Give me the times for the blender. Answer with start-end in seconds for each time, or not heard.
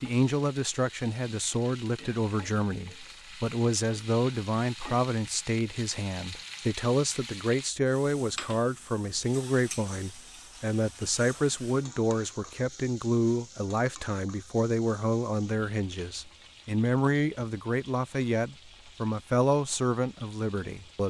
not heard.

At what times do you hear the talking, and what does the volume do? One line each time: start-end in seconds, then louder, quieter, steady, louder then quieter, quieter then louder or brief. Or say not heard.
0.0-21.0 steady.